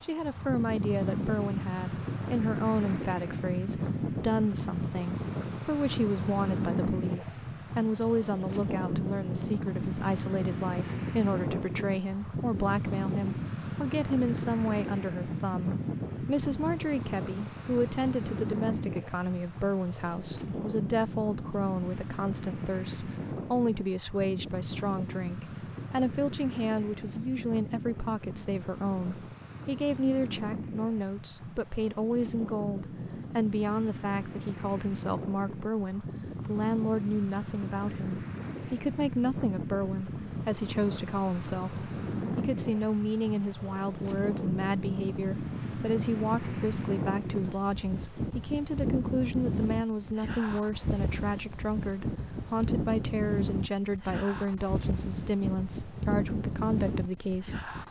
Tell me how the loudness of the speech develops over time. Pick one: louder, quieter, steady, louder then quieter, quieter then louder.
steady.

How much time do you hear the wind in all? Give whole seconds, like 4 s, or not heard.
58 s.